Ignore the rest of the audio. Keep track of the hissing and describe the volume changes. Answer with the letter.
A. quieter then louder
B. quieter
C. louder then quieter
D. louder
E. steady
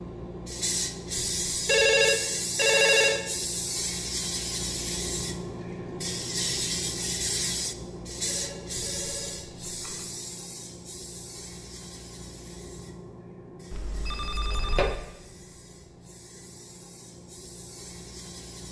B.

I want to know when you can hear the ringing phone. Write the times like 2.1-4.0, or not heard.
1.6-3.2, 8.2-10.1, 13.7-15.0.